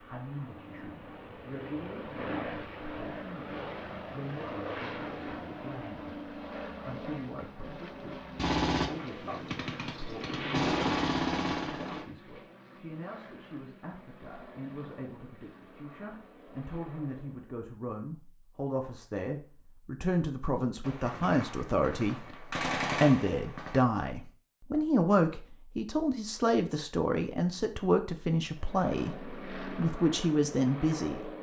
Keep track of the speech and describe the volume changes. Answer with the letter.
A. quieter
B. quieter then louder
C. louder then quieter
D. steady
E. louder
E.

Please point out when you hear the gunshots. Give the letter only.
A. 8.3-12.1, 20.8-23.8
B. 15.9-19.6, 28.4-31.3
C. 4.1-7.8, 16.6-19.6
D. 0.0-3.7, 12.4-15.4
A.